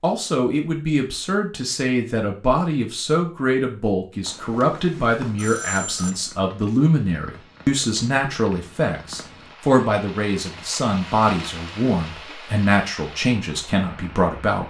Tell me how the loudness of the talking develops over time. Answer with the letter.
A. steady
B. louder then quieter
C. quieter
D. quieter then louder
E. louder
A.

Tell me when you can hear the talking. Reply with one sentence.
You can hear the talking from 0.0 to 14.6 s.